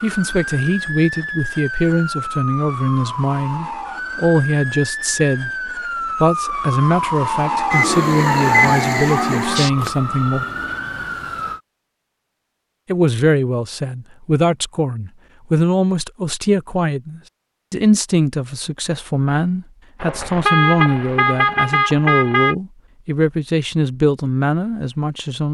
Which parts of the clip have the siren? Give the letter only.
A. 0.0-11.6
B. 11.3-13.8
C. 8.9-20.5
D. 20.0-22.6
A.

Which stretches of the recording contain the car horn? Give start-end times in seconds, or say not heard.
20.0-22.6.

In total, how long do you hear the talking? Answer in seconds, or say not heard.
23 s.